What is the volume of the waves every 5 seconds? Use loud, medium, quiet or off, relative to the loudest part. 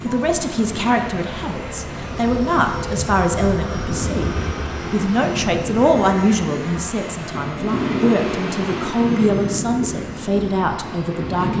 medium, loud, loud.